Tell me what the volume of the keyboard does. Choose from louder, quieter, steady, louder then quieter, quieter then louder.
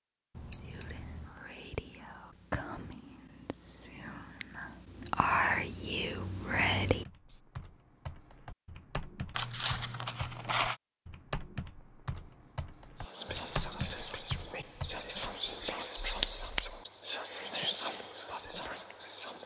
louder.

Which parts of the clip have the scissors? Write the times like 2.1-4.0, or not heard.
0.3-1.4, 9.3-10.8, 16.0-16.8.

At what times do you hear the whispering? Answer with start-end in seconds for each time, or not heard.
0.6-7.4, 12.9-19.4.